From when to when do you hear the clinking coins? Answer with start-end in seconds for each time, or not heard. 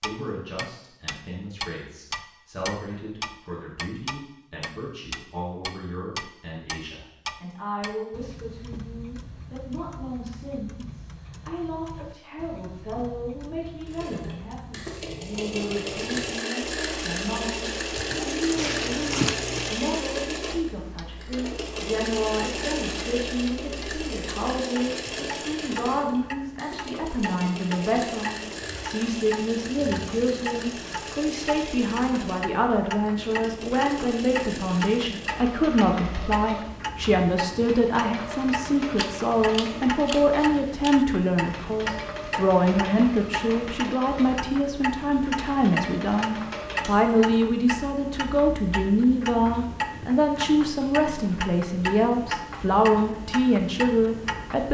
18.6-19.8.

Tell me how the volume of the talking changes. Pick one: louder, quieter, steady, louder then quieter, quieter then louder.
louder.